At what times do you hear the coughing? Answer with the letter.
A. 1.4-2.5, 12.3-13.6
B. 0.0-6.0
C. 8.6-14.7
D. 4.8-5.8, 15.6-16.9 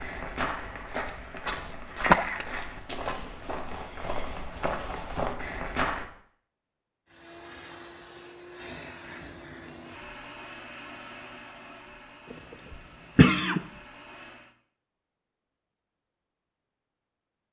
A.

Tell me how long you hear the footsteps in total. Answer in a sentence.
The footsteps can be heard for 6 seconds in total.